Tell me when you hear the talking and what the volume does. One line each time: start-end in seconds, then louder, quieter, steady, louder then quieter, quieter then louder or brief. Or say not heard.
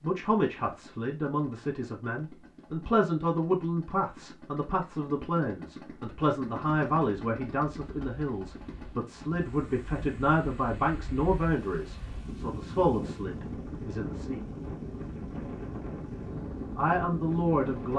0.0-14.4 steady
16.8-17.9 brief.